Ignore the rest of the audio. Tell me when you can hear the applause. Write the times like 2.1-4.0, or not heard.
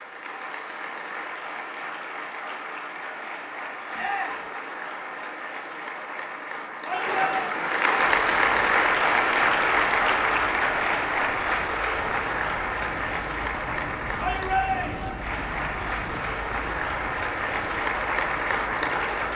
0.0-19.3.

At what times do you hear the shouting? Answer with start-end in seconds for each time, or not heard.
4.0-4.5, 6.8-7.3, 14.2-15.2.